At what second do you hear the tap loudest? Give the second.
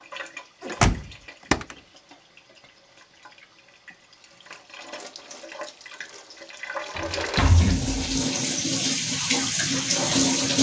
10 s.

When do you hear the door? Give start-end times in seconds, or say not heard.
0.7-1.6, 7.0-8.1.